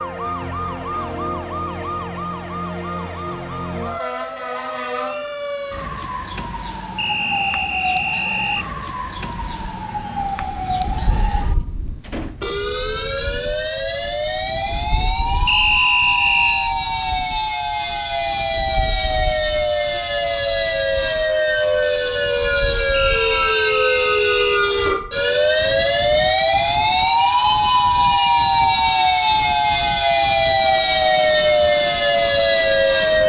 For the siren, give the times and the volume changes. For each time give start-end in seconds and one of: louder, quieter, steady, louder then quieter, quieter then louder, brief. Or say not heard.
0.0-33.2 louder.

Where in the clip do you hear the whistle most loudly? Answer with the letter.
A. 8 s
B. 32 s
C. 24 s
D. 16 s
D.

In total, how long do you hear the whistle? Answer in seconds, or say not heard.
5 s.